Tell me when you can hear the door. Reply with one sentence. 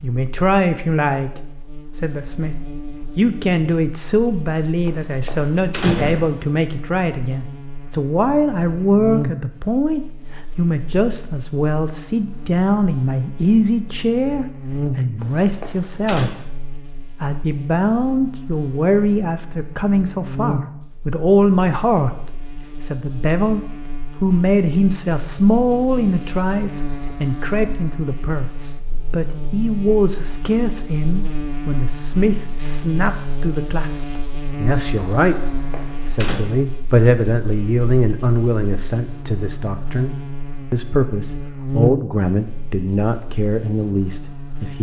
You can hear the door from 4.8 to 6.5 s, from 15.2 to 16.4 s and from 35.5 to 36.4 s.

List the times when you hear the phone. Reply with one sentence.
You can't hear the phone here.